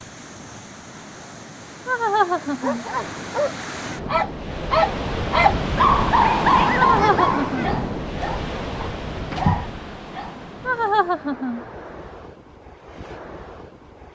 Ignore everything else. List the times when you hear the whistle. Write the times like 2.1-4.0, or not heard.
not heard.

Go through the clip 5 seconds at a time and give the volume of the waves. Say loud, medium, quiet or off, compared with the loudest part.
medium, loud, quiet.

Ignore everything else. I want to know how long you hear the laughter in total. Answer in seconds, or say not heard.
3 s.